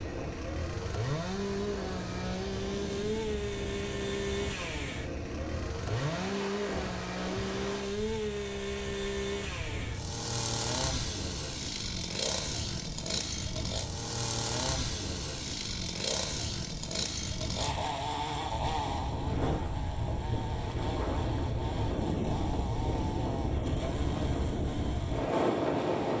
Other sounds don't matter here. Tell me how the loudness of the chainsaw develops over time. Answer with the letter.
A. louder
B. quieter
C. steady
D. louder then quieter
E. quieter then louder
B.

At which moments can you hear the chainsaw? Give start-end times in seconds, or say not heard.
0.0-26.1.